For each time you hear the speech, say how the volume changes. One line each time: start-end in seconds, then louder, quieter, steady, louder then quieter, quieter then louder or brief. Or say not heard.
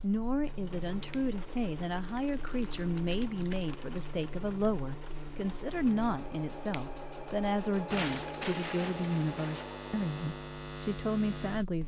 0.0-11.8 steady.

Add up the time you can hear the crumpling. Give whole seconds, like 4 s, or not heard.
4 s.